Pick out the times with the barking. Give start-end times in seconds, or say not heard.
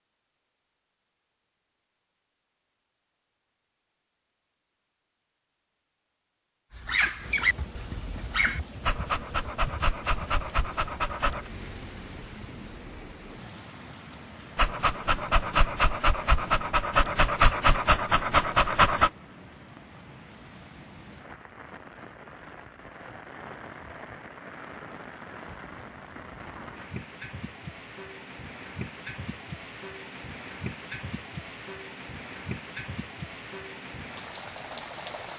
6.7-11.5, 14.6-19.1.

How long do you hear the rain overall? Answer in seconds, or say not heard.
28 s.